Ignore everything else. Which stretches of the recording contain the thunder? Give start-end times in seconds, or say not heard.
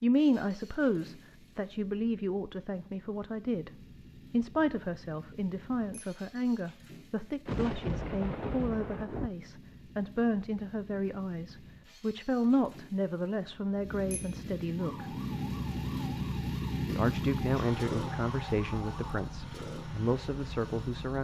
7.5-9.3.